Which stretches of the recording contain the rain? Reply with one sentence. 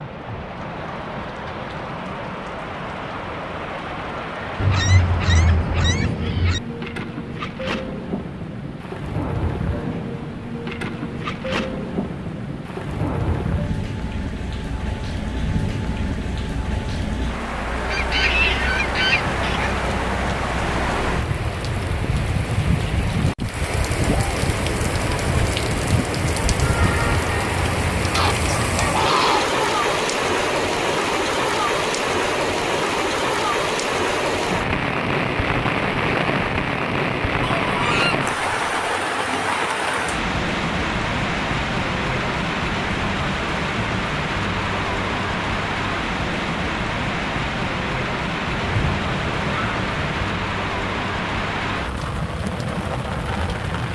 The rain can be heard from 0.0 to 53.8 s.